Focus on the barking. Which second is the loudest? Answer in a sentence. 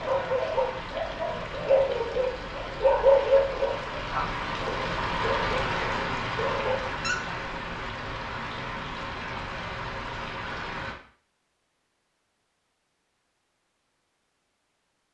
The loudest moment of the barking is at 3 seconds.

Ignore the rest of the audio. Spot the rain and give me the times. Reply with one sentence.
The rain can be heard from 0.0 to 11.0 s.